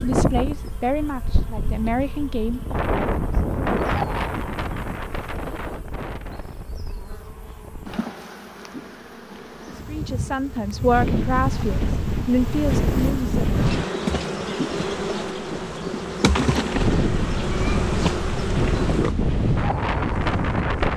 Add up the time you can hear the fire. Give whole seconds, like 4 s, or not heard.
not heard.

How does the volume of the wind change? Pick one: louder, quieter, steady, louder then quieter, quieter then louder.
quieter then louder.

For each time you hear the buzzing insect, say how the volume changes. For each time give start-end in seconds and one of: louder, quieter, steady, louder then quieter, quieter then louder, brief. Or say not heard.
0.0-20.9 louder.